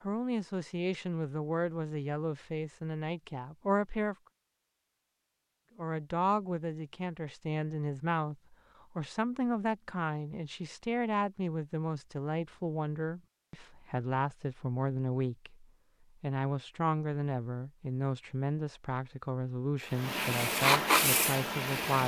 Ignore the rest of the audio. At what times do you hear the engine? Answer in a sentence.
The engine can be heard from 19.9 to 22.0 s.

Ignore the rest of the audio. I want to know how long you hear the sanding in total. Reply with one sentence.
The sanding can be heard for 2 seconds in total.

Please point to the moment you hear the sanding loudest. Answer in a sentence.
The loudest moment of the sanding is at 21 seconds.